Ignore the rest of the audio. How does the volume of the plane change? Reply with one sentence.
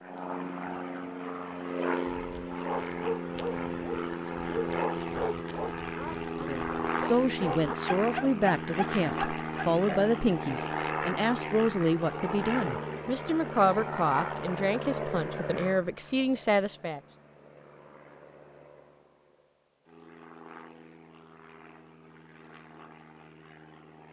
The volume of the plane goes down.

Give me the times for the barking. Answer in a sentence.
The barking can be heard from 2.0 to 10.2 s.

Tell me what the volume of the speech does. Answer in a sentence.
The volume of the speech stays about the same.